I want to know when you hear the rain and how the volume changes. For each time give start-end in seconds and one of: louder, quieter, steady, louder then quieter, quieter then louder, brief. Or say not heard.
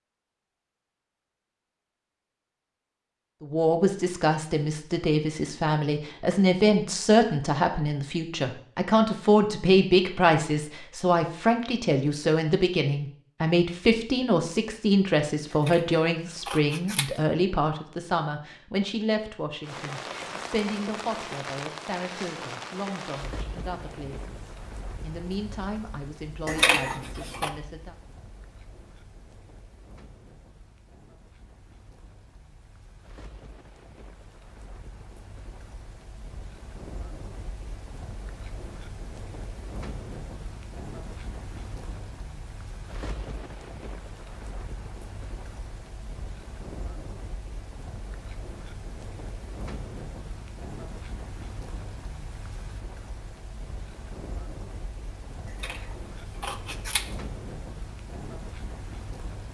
19.6-59.4 quieter then louder.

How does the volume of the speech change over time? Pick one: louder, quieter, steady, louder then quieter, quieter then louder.
quieter.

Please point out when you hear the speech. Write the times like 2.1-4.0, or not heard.
3.4-27.9.